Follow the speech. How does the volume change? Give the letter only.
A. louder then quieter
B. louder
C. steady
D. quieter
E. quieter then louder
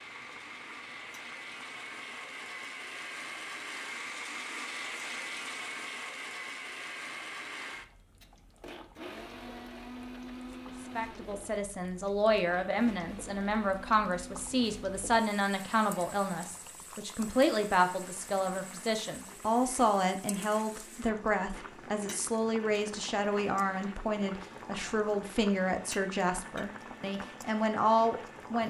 C.